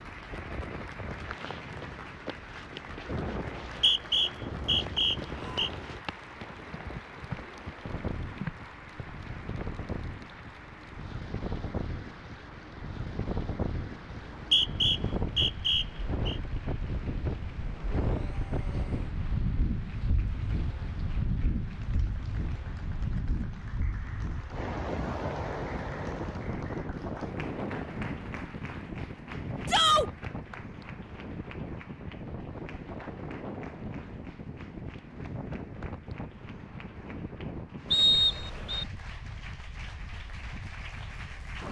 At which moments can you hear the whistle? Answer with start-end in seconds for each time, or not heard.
3.5-5.7, 14.1-16.4, 37.9-38.9.